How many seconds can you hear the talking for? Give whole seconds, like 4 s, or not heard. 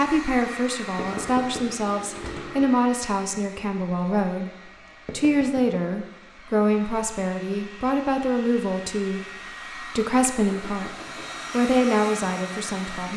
12 s.